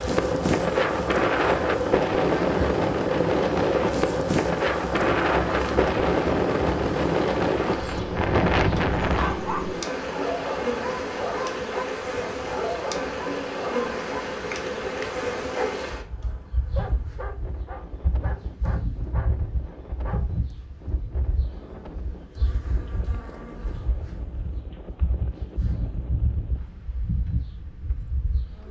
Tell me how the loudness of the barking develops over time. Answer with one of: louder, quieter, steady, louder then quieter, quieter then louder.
quieter.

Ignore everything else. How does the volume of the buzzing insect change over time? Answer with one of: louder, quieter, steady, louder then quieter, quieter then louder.
quieter.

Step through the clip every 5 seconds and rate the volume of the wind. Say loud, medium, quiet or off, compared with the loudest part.
loud, loud, quiet, quiet, quiet, quiet.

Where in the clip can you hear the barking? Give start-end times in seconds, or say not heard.
9.0-20.4.